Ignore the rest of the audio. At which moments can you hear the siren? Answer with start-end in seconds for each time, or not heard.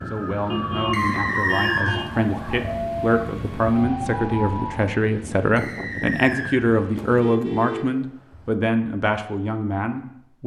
0.0-5.0.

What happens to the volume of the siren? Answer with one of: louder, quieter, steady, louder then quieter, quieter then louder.
steady.